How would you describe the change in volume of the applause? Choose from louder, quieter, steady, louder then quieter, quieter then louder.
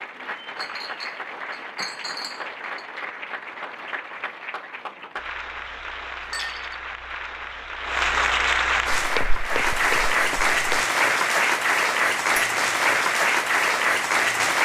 louder.